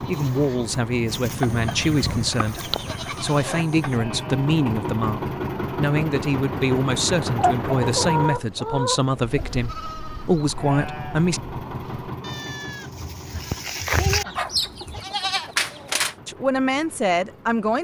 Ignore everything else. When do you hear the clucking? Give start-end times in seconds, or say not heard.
1.4-3.9, 7.3-9.7, 13.2-15.1.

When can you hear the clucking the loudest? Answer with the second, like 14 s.
8 s.